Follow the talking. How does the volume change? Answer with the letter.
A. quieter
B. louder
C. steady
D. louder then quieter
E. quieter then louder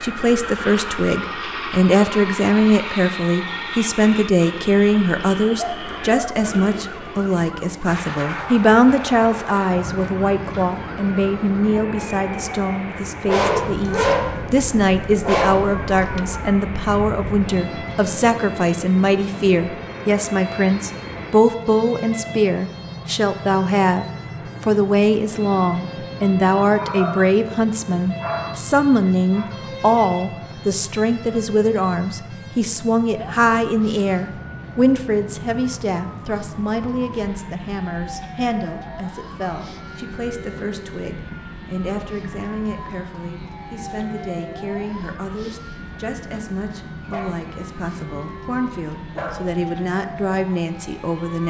A.